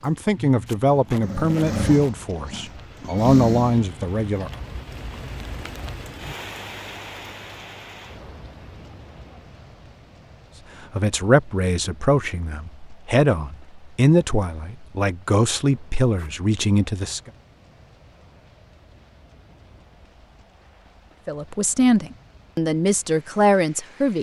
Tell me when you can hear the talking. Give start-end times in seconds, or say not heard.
0.0-4.5, 10.9-17.3, 21.2-24.1.